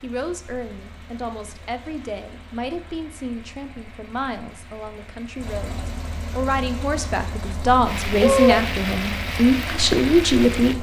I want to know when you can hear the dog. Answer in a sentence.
You can hear the dog from 7.7 to 8.9 s.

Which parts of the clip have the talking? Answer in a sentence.
The talking can be heard from 0.0 to 10.7 s.